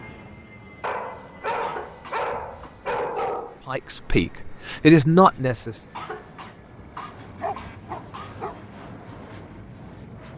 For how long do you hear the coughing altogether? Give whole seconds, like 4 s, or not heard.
4 s.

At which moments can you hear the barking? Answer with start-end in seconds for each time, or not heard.
0.8-3.6, 7.2-8.6.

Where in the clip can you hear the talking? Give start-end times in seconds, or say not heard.
3.6-5.8.